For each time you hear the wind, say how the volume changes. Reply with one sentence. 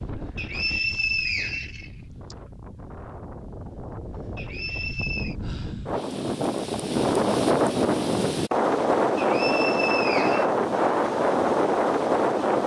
You can hear the wind from 0.0 to 12.6 s, getting louder.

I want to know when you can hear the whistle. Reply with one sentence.
You can hear the whistle from 0.3 to 2.4 s, from 4.3 to 5.3 s and from 9.2 to 10.5 s.